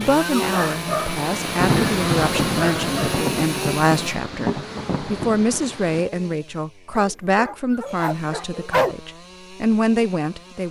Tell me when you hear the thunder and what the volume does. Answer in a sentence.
You can hear the thunder from 1.4 to 6.1 s, getting quieter.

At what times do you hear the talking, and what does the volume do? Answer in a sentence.
You can hear the talking from 0.0 to 10.6 s, at a steady volume.